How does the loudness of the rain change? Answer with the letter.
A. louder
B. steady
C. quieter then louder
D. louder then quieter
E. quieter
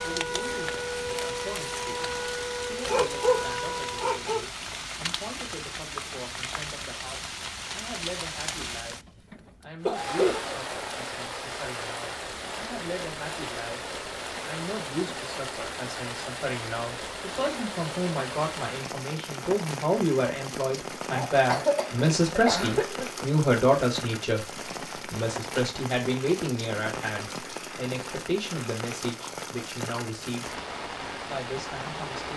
B.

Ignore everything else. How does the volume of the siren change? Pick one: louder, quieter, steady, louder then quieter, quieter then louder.
steady.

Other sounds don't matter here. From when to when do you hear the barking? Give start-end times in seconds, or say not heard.
2.9-4.4.